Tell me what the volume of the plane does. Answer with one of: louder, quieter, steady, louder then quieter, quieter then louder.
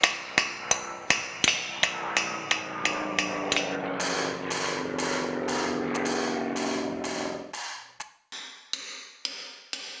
louder.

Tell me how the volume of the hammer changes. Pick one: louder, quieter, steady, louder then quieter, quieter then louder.
quieter.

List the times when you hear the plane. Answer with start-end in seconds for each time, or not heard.
0.0-7.5.